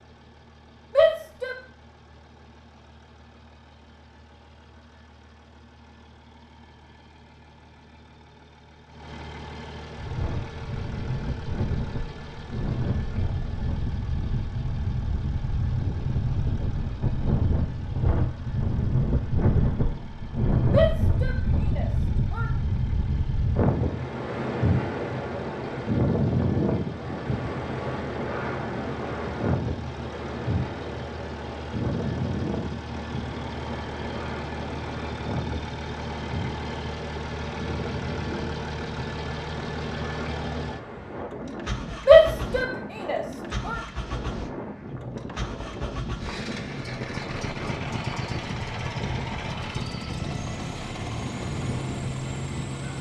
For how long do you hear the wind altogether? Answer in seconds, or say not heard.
43 s.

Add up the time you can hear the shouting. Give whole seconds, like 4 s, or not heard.
4 s.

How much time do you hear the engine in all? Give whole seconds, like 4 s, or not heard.
53 s.